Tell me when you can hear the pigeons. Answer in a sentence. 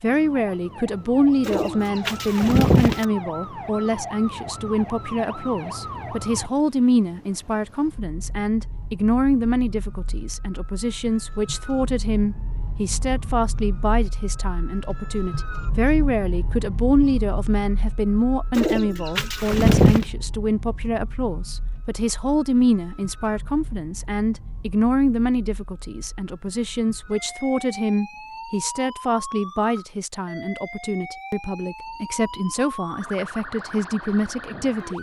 The pigeons can be heard from 1.4 to 3.0 s and from 18.6 to 20.1 s.